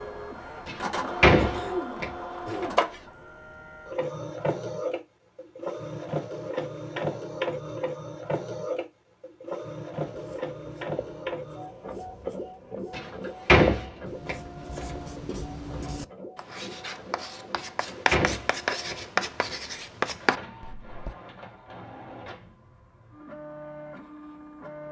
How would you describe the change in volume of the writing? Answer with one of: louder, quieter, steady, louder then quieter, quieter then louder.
louder.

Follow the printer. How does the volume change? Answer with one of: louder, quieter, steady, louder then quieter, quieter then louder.
quieter.